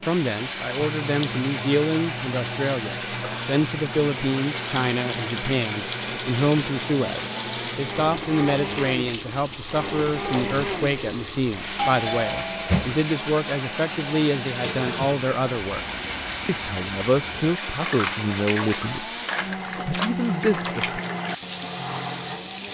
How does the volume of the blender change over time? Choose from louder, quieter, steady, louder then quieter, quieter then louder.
steady.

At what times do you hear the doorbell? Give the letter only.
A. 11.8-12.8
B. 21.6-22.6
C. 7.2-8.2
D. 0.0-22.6
A.